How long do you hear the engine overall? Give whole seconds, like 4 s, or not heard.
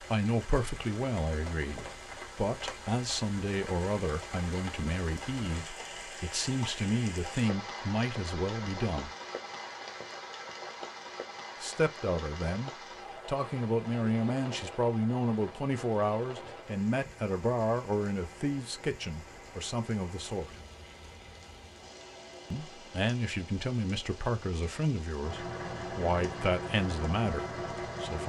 3 s.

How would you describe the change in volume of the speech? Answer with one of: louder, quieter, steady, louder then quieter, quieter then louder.
steady.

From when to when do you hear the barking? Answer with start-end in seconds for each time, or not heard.
not heard.